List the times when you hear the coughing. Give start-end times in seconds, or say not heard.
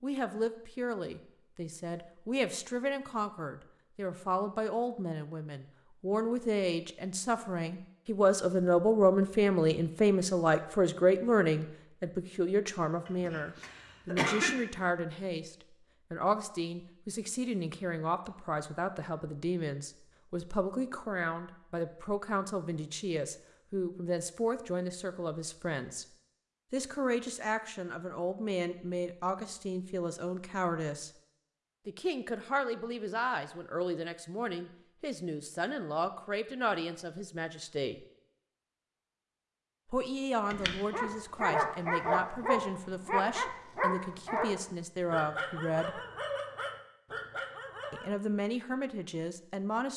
13.1-14.6.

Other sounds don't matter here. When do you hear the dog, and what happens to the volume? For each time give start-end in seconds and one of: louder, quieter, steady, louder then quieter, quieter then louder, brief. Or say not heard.
40.5-48.1 quieter.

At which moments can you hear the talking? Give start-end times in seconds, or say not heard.
0.0-26.1, 26.7-31.1, 31.9-38.0, 39.9-46.0, 47.9-49.9.